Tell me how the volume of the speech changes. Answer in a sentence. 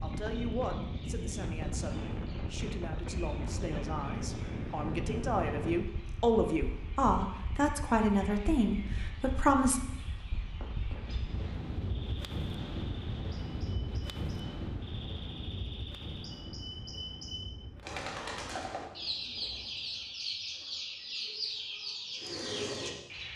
The loudness of the speech goes up.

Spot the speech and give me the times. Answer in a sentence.
You can hear the speech from 0.0 to 9.8 s.